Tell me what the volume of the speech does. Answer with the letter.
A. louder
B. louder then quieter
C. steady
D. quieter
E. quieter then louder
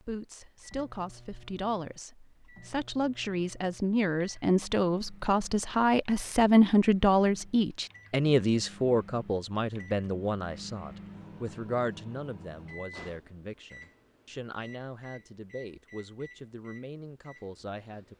B.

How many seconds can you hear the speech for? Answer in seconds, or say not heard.
18 s.